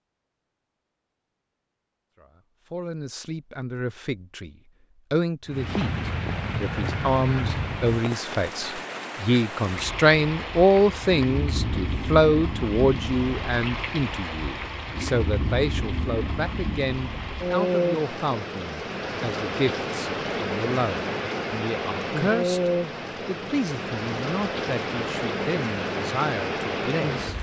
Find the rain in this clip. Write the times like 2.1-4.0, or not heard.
5.5-27.3.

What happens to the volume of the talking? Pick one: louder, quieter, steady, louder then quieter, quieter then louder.
louder then quieter.